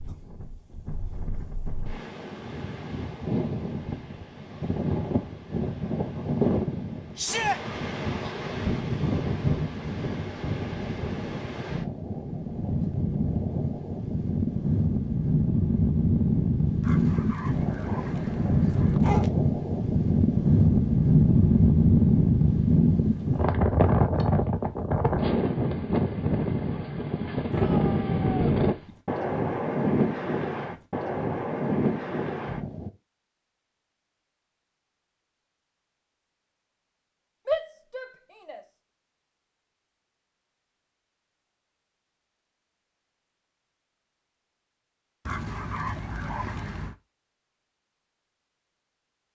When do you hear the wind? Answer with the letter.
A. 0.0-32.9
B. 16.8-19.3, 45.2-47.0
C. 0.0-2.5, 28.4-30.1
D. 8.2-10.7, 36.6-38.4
A.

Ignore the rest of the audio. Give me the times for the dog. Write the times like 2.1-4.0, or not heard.
16.8-19.3, 45.2-47.0.